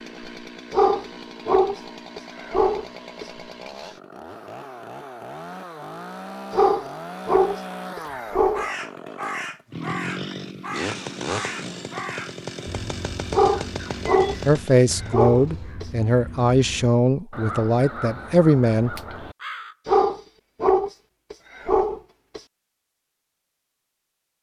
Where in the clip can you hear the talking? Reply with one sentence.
You can hear the talking from 14.4 to 19.0 s.